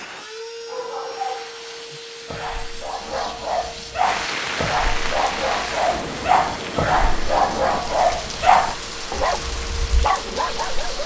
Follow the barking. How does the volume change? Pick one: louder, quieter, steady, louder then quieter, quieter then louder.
louder then quieter.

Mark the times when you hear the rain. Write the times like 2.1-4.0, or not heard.
4.0-11.0.